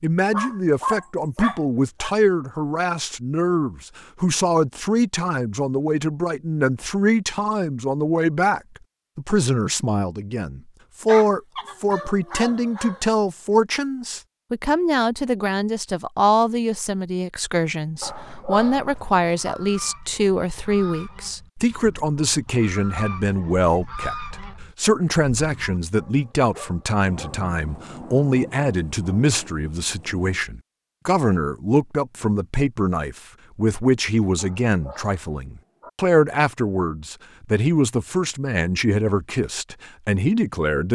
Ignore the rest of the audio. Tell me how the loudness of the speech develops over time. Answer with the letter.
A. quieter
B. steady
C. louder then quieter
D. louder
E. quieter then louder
B.